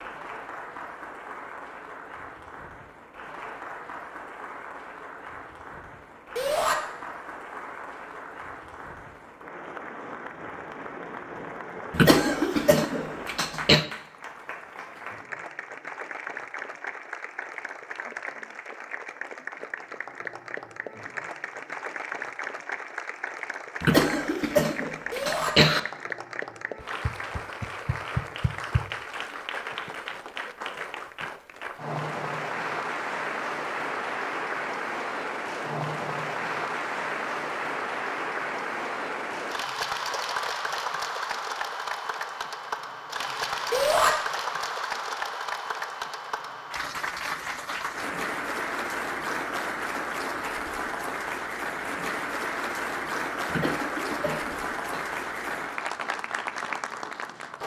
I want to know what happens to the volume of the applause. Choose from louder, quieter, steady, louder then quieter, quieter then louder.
louder.